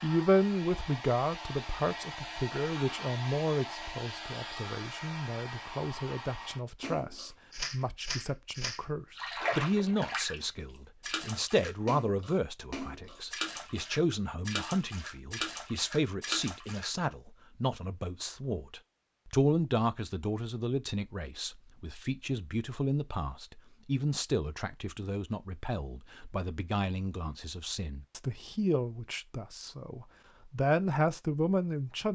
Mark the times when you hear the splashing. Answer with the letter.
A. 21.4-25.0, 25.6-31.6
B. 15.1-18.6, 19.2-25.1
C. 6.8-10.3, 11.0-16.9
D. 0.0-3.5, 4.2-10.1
C.